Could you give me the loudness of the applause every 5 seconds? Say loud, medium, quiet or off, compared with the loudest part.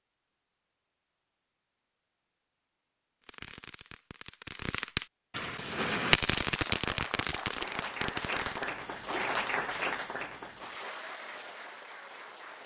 off, loud, medium.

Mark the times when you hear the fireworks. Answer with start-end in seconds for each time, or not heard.
3.2-8.8.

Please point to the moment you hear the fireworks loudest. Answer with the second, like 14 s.
6 s.